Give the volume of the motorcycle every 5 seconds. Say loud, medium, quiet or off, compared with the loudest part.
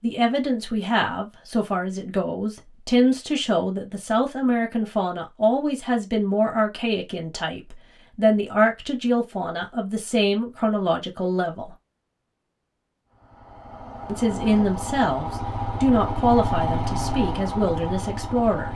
off, off, medium, loud.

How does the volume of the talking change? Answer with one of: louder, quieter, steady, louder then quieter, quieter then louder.
steady.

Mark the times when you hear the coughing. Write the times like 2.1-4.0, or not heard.
not heard.